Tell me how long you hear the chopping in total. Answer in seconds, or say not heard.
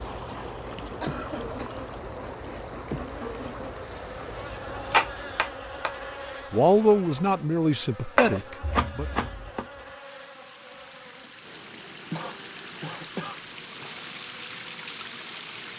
3 s.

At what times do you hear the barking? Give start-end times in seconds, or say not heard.
not heard.